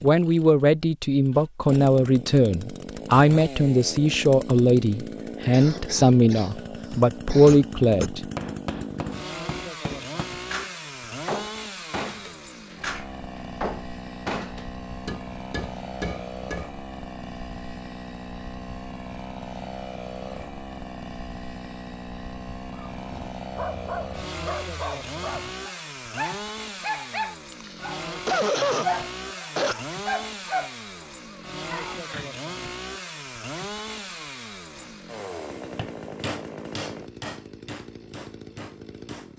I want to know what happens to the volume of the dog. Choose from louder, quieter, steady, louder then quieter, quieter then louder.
louder then quieter.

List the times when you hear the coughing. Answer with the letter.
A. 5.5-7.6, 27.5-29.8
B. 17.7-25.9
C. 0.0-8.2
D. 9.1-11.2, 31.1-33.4
A.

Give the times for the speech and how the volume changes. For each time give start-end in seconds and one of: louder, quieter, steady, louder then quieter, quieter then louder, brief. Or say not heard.
0.0-8.2 steady.